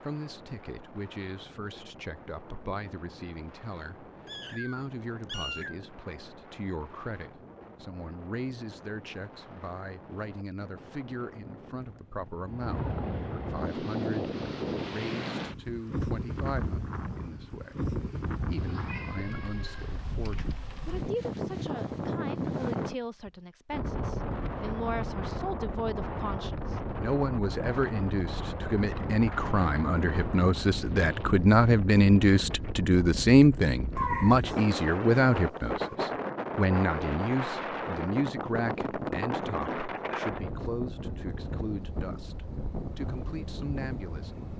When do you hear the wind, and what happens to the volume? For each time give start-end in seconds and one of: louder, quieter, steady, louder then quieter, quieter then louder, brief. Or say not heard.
0.0-44.5 louder.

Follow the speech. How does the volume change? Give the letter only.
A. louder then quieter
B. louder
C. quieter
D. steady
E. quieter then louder
A.